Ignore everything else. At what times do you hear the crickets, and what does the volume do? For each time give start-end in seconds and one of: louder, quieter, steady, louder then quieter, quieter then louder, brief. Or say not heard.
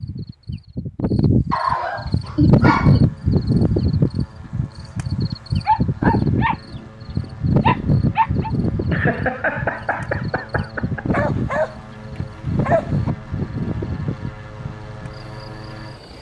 0.0-16.1 quieter.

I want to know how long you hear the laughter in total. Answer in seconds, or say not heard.
3 s.